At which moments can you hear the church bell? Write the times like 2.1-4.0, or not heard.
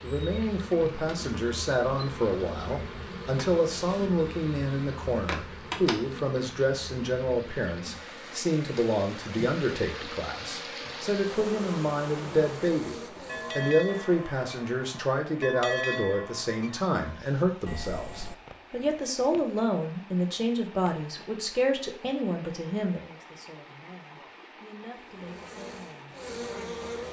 13.2-18.4.